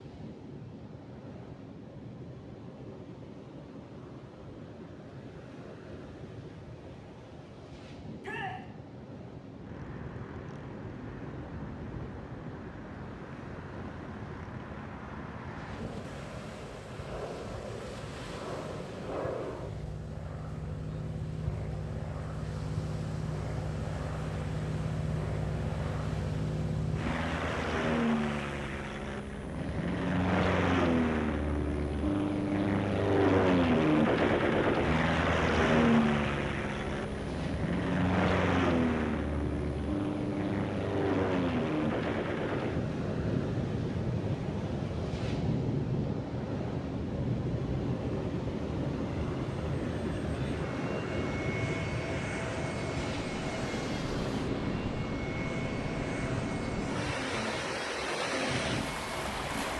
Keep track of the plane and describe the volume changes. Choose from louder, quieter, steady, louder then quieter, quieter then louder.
louder then quieter.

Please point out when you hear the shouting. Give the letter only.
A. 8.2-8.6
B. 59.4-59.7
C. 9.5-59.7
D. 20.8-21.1
A.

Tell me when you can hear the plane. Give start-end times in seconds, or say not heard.
9.5-59.7.